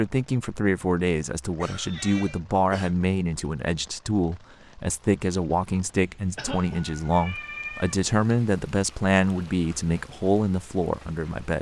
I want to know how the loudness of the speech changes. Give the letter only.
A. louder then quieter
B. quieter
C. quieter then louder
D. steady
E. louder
D.